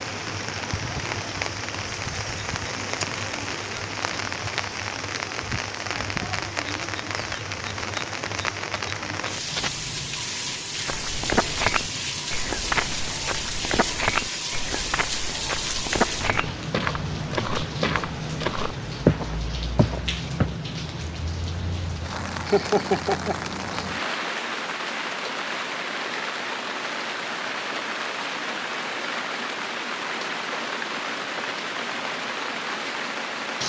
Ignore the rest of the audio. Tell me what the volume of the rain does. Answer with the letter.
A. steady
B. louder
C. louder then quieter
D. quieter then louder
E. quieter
A.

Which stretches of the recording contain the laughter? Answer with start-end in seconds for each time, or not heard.
22.4-23.9.